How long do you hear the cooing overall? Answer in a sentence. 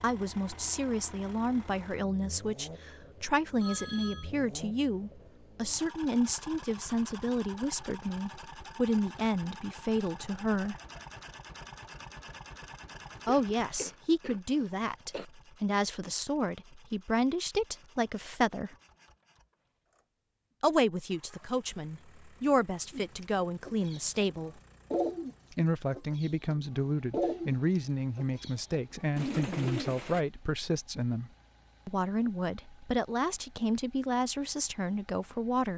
You can hear the cooing for 7 seconds altogether.